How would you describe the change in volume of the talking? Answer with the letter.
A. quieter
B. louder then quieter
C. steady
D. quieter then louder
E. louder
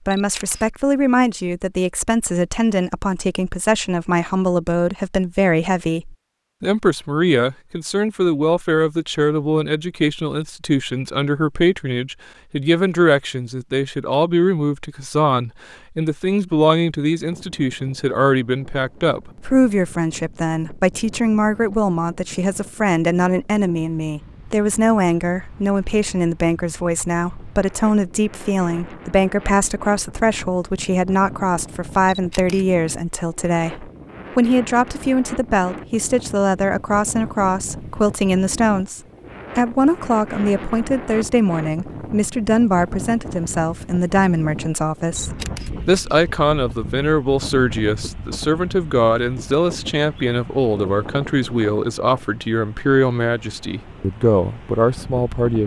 C.